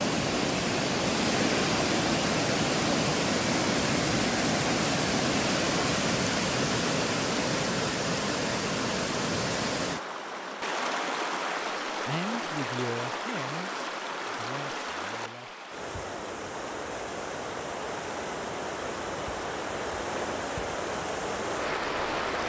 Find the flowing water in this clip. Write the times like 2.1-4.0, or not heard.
0.0-22.4.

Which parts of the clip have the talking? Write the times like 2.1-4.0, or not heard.
12.1-15.6.